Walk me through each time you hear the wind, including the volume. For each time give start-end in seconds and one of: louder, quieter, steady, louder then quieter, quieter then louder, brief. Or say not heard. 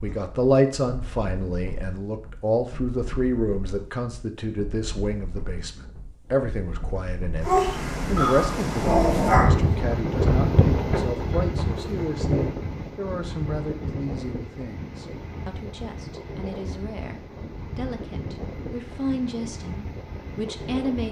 0.0-21.0 louder then quieter.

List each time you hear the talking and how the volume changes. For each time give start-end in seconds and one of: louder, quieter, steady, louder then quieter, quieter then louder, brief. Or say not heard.
0.0-21.0 quieter.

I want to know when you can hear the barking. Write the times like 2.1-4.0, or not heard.
7.4-9.8.